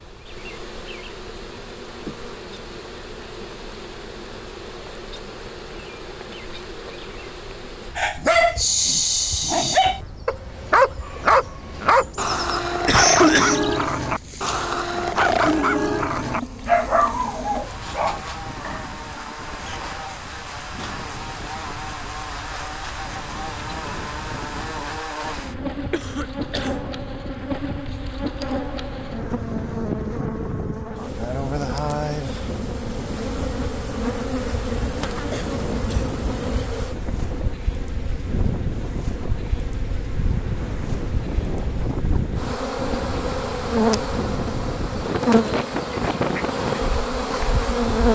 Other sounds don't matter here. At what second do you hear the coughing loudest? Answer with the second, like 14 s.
13 s.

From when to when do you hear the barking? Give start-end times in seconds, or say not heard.
8.0-19.4.